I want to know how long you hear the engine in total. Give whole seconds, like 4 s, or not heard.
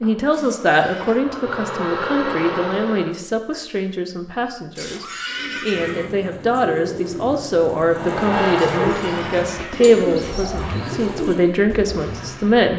8 s.